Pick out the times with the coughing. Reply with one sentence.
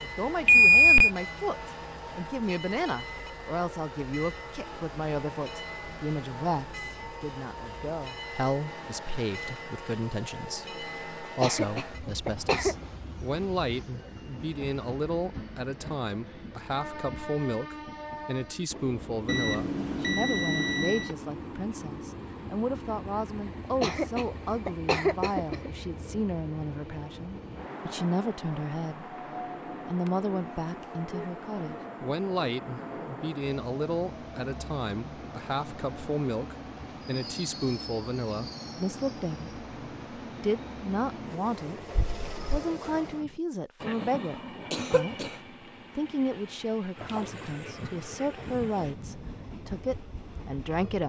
You can hear the coughing from 11.2 to 12.8 s, from 23.6 to 25.7 s and from 44.7 to 45.4 s.